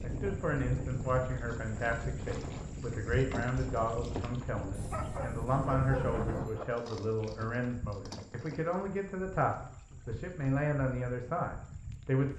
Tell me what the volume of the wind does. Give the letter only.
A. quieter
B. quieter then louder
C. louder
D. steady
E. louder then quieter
D.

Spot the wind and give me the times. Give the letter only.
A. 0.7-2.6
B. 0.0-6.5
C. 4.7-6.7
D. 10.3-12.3
B.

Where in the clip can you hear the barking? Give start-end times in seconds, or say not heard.
4.7-6.7.